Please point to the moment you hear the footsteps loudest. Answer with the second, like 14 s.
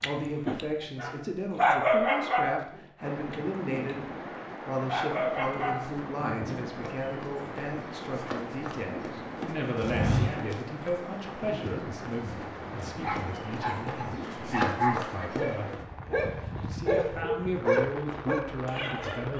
10 s.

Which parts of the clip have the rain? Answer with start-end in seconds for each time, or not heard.
3.0-19.3.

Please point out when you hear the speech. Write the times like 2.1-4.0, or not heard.
0.0-19.3.